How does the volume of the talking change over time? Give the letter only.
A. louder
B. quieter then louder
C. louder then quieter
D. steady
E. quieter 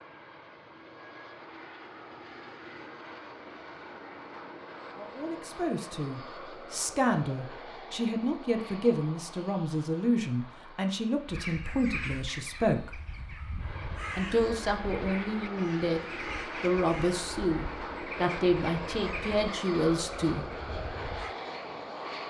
D.